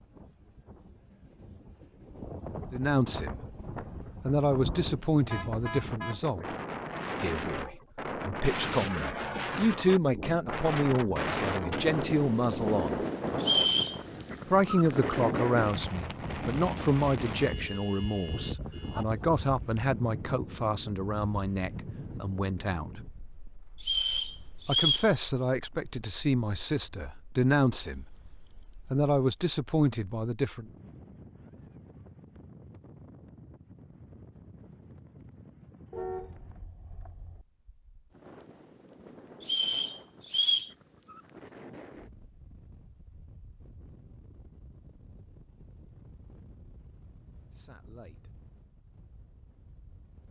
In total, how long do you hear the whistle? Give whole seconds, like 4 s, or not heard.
3 s.